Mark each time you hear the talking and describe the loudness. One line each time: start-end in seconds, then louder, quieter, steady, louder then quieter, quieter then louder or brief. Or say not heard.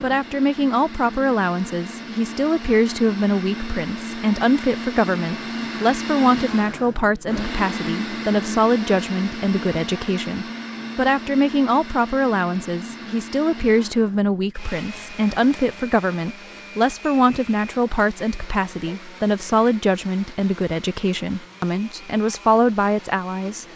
0.0-23.7 steady.